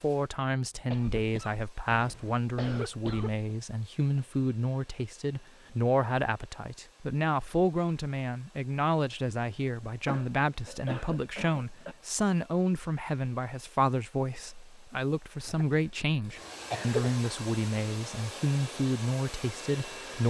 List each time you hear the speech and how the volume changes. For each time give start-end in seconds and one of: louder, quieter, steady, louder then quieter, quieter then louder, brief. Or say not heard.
0.0-20.2 steady.